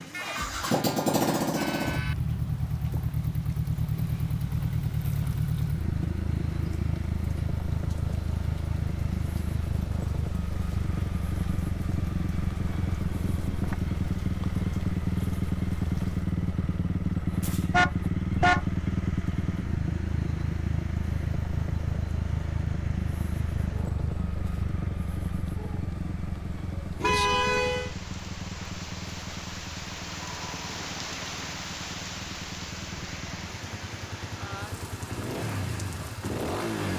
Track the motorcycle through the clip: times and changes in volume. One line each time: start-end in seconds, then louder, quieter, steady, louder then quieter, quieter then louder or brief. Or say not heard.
0.0-36.9 quieter.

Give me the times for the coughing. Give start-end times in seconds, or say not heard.
not heard.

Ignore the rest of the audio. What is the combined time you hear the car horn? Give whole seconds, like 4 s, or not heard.
4 s.